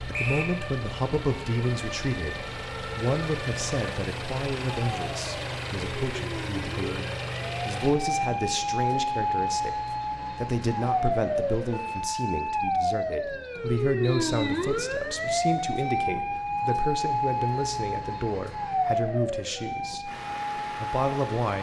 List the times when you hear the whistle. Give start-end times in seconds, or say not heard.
0.1-0.6, 14.0-14.7.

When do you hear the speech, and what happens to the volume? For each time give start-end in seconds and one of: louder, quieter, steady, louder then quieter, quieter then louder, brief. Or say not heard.
0.1-20.2 steady
20.8-21.5 brief.